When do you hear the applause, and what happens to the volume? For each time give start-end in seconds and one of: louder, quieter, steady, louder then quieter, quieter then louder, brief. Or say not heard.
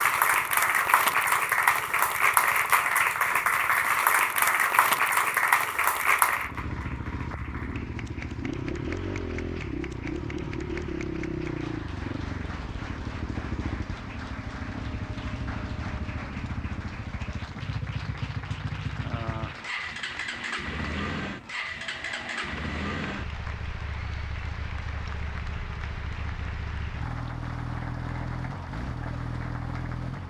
0.0-30.2 quieter.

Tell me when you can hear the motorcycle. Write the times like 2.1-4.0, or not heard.
0.0-30.2.